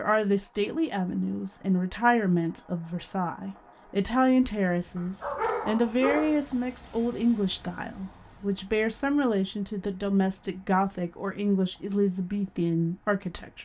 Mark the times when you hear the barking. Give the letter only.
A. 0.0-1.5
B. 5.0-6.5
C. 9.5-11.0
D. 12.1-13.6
B.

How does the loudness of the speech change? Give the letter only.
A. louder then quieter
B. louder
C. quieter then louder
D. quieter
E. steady
E.